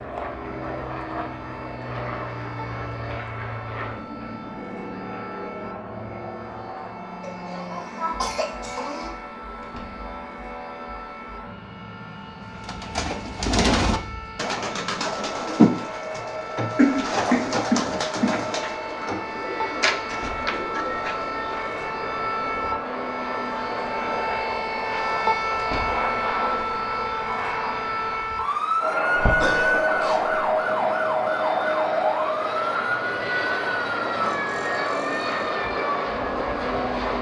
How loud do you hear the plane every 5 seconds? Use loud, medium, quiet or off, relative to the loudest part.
medium, medium, quiet, medium, medium, loud, loud, loud.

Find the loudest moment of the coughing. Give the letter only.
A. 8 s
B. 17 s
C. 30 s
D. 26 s
B.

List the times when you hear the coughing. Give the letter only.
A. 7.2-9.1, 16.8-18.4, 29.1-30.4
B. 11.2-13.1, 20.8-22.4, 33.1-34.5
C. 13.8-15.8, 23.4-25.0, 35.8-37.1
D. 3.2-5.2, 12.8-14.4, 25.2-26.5
A.